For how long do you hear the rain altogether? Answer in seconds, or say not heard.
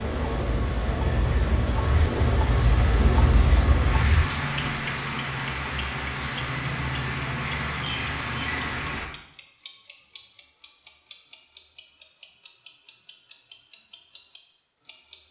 9 s.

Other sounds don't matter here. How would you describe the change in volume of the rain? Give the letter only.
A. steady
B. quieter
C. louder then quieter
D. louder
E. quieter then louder
A.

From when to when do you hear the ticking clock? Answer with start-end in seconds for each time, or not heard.
0.1-15.2.